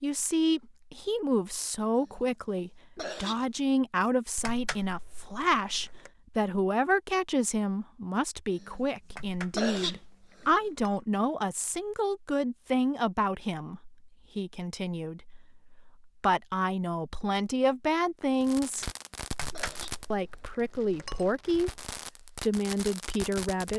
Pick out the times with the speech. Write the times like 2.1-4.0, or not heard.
0.0-18.9, 20.1-23.7.